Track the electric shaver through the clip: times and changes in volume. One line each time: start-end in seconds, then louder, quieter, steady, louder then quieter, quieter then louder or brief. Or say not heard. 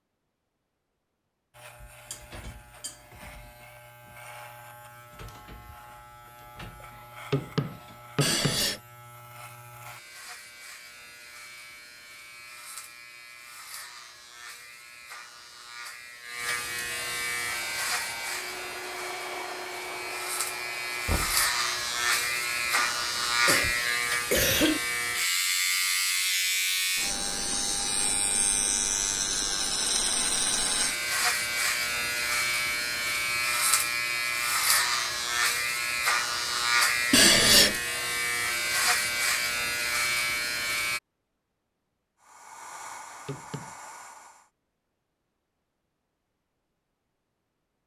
1.5-41.0 louder.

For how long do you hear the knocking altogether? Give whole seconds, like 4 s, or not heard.
2 s.